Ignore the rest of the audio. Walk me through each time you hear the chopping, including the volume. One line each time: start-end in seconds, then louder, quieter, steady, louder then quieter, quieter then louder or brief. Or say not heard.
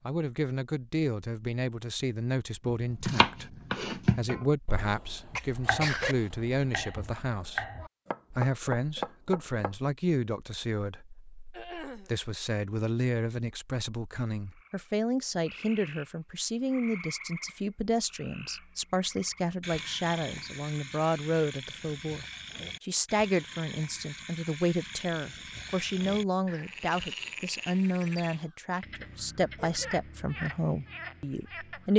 2.6-9.8 quieter then louder.